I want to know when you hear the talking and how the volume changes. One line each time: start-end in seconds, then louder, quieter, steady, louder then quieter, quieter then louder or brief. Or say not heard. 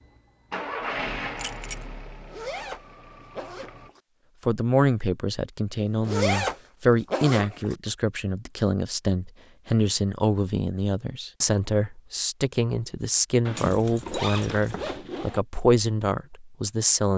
4.5-17.1 steady.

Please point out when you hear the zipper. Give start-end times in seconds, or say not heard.
2.0-4.0, 5.8-7.8, 13.4-15.4.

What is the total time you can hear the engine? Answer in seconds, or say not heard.
4 s.